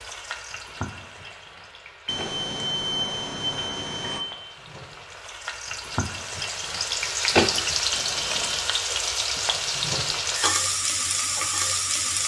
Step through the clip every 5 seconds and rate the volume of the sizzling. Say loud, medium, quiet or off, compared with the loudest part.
quiet, loud, loud.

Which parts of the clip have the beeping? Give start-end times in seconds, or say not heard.
2.0-4.2, 7.9-8.7.